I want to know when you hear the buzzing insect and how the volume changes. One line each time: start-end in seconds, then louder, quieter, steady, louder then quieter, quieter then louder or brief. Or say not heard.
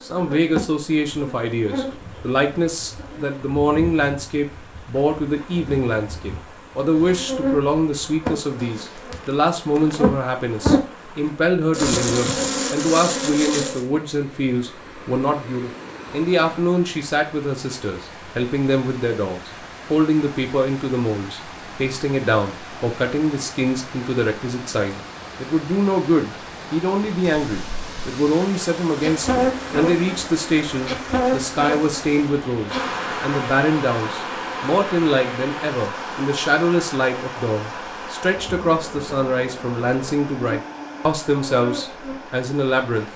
0.0-13.8 quieter then louder
28.9-43.1 quieter.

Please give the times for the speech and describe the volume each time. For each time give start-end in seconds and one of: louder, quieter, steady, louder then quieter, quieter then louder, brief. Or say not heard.
0.0-43.0 steady.